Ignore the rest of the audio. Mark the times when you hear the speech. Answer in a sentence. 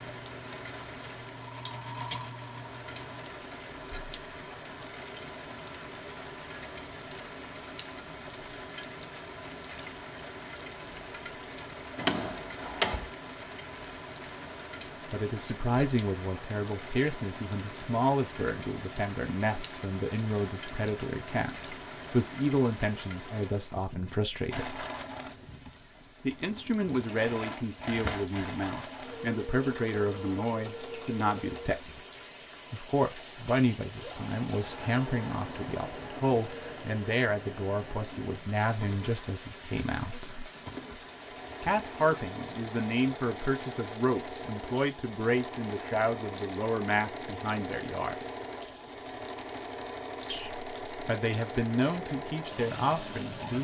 The speech can be heard from 15.1 to 24.8 s, from 26.2 to 32.0 s, from 32.7 to 40.5 s, from 41.6 to 48.2 s and from 50.3 to 53.5 s.